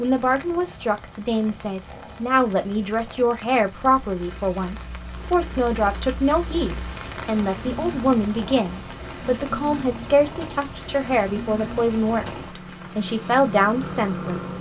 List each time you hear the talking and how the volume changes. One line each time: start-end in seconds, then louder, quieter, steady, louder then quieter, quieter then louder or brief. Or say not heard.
0.0-14.5 steady.